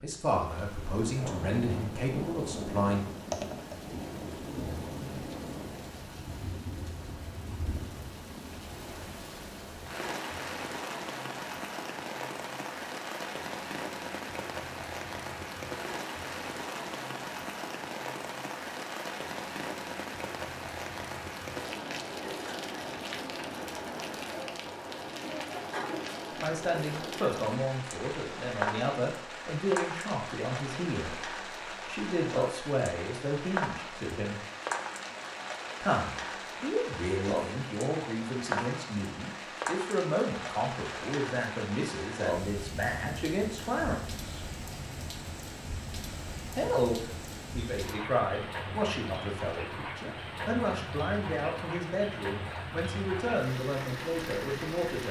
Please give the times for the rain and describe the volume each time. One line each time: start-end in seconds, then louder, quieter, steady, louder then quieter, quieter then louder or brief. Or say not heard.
0.0-55.0 steady.